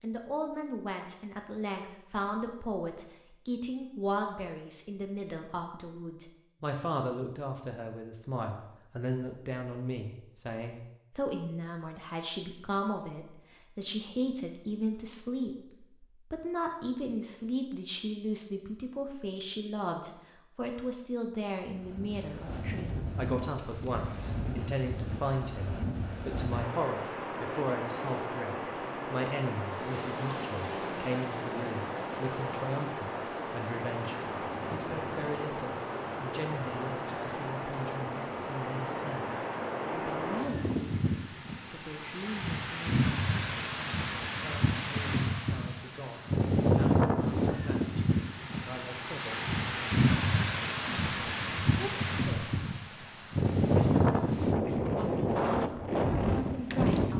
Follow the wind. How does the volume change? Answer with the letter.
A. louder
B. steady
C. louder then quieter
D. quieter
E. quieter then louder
A.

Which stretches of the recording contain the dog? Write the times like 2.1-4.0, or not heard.
not heard.